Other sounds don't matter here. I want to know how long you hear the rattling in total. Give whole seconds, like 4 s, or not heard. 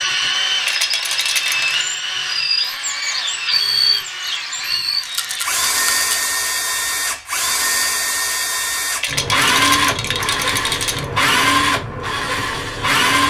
5 s.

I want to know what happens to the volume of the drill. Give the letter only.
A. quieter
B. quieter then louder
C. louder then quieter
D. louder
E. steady
E.